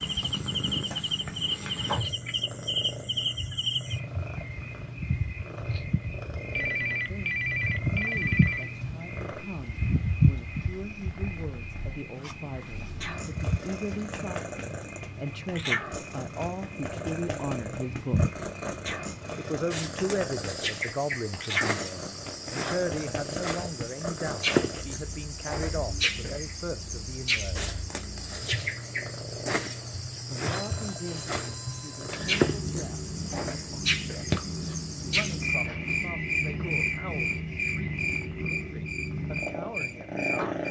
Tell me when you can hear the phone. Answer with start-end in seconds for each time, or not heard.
6.5-8.8, 30.5-32.3.